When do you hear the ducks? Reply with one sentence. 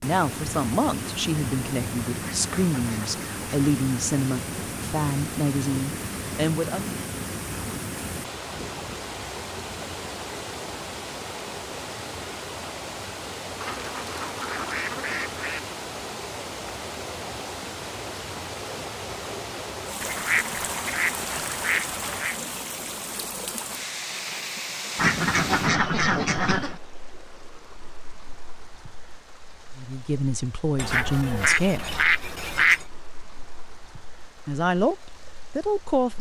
You can hear the ducks from 2.2 to 3.5 s, from 8.4 to 10.1 s, from 13.6 to 15.6 s, from 20.0 to 22.4 s, from 24.9 to 26.8 s and from 30.8 to 32.9 s.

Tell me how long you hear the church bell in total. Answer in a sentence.
You can't hear the church bell here.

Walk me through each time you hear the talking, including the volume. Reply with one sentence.
You can hear the talking from 0.0 to 6.9 s, at a steady volume; briefly from 29.8 to 32.0 s; and briefly from 34.4 to 36.1 s.